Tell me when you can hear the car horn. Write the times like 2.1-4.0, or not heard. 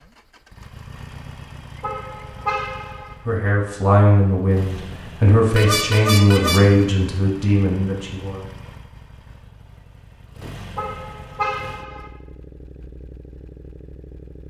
1.8-3.1, 5.5-6.8, 10.8-12.1.